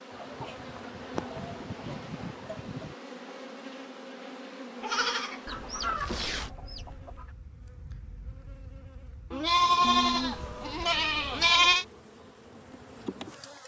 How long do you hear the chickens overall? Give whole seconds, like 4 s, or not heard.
6 s.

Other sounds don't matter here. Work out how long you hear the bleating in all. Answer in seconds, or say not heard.
7 s.